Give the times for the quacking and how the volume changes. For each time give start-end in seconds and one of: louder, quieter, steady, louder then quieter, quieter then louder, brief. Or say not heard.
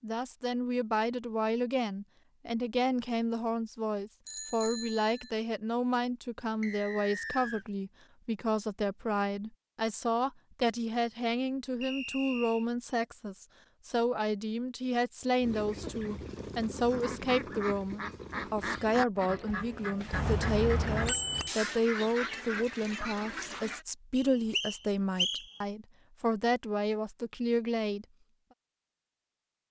15.4-23.9 steady.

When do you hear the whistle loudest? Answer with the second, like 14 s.
25 s.